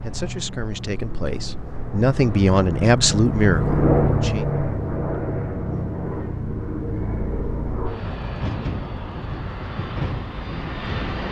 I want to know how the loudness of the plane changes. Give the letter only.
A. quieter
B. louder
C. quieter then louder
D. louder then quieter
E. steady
D.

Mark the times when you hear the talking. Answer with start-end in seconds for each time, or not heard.
0.0-4.5.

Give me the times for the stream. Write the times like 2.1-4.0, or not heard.
not heard.